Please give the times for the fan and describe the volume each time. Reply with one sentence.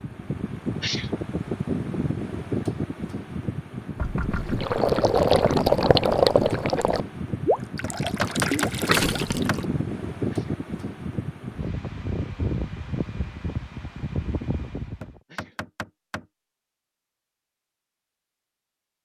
The fan can be heard from 0.0 to 15.2 s, at a steady volume.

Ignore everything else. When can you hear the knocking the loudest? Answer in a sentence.
The volume of the knocking peaks at 8 seconds.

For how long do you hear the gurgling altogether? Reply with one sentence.
You can hear the gurgling for 5 seconds altogether.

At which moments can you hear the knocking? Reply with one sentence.
The knocking can be heard from 4.0 to 4.6 s, from 7.8 to 9.6 s and from 15.0 to 16.2 s.